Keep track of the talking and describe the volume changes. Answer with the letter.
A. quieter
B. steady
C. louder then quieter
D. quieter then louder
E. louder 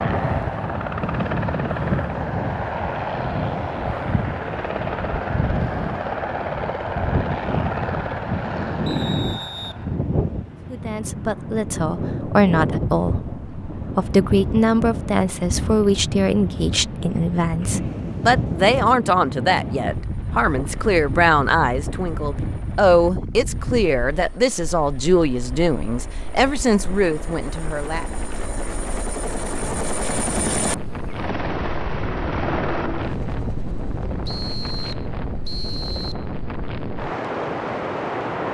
B.